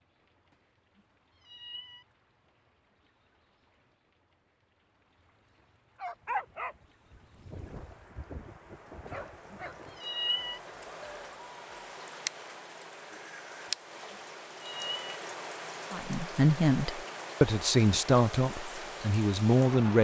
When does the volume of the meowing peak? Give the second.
10 s.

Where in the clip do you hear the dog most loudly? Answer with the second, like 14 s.
6 s.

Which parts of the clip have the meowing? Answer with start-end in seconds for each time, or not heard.
0.5-2.0, 9.1-10.6, 13.7-15.2.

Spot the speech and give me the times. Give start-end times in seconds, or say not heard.
15.9-19.9.